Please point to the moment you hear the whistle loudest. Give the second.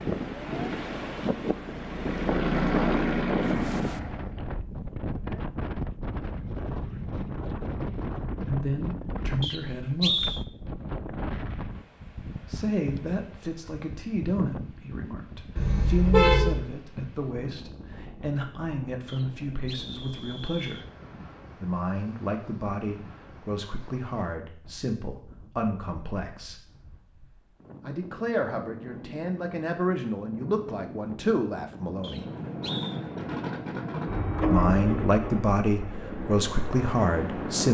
10 s.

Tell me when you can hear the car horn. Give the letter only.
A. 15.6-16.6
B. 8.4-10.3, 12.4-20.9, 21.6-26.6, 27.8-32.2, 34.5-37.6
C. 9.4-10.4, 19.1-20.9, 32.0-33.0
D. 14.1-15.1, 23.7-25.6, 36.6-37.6
A.